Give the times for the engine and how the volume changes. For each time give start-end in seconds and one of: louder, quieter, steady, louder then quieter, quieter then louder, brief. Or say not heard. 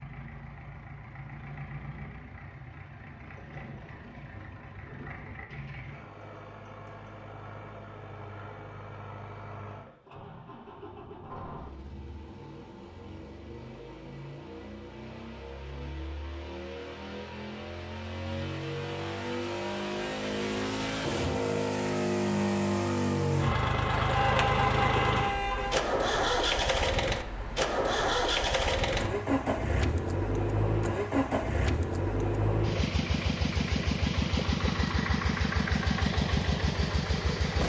0.0-37.6 louder.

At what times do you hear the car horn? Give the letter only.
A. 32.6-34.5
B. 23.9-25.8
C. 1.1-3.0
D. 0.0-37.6
B.